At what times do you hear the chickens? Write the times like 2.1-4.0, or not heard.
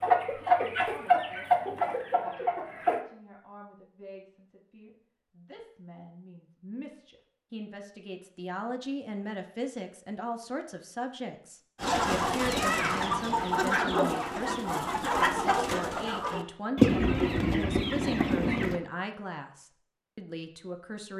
0.0-3.0, 11.8-18.8.